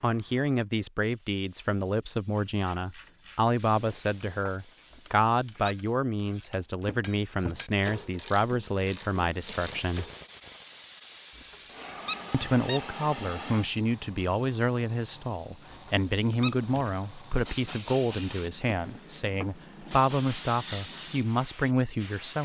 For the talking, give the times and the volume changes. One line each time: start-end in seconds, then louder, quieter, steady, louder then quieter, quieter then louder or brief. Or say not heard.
0.0-10.1 steady
12.3-22.4 steady.